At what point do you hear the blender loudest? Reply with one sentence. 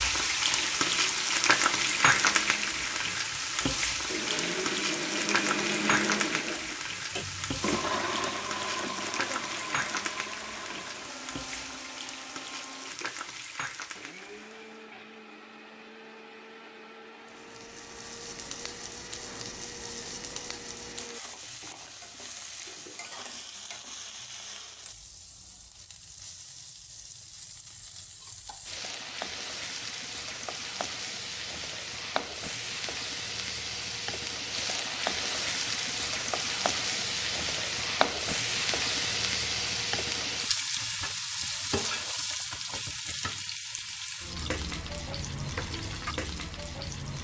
The loudest moment of the blender is at 6 seconds.